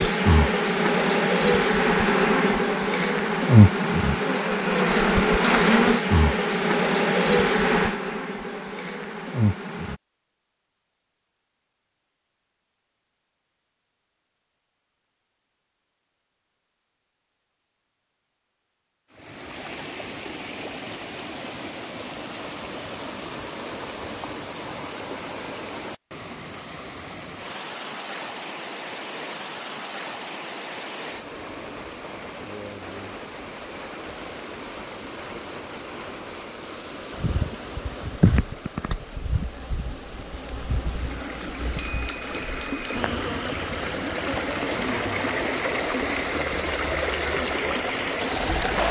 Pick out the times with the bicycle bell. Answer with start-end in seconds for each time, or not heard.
41.6-43.0.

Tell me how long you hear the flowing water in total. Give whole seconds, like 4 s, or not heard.
30 s.